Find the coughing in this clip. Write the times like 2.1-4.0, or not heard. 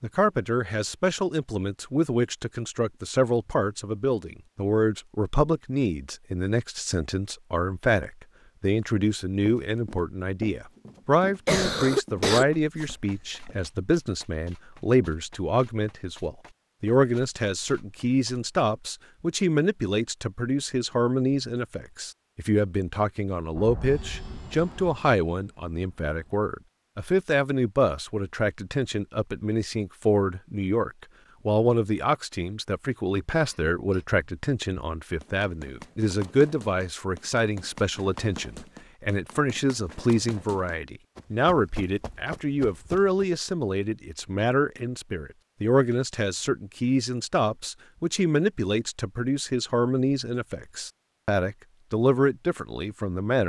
11.4-13.6, 33.3-34.0.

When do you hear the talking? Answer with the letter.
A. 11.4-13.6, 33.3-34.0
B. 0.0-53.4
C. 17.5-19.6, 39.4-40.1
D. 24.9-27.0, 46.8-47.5
B.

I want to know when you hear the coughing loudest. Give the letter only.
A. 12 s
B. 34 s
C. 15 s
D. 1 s
A.